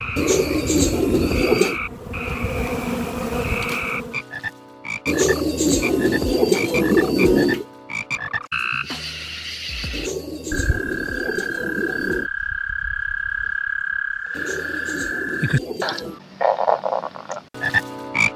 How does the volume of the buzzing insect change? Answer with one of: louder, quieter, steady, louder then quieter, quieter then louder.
louder.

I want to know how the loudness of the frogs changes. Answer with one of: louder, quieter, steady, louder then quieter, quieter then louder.
louder.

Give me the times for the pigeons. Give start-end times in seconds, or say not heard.
0.1-1.8, 5.0-7.7, 9.9-12.3, 14.3-16.2.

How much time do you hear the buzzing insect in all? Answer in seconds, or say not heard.
4 s.